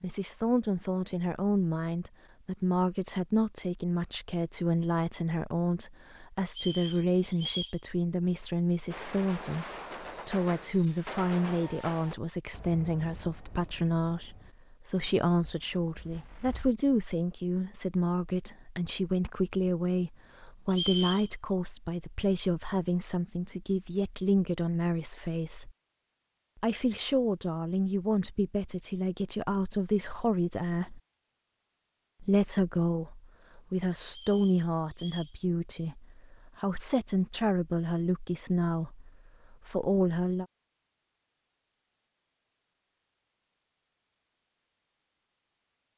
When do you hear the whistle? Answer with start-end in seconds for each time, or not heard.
6.5-7.8, 20.7-21.3, 34.0-35.4.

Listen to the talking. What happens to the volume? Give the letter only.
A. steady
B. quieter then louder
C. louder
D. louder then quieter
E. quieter
A.